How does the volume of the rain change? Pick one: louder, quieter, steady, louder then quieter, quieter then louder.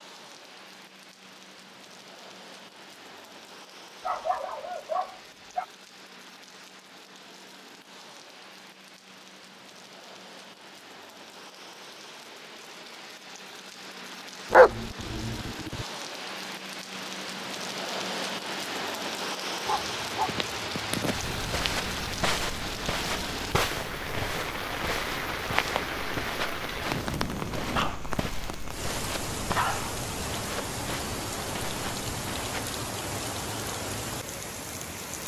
louder.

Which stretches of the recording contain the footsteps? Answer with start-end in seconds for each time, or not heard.
21.0-32.8.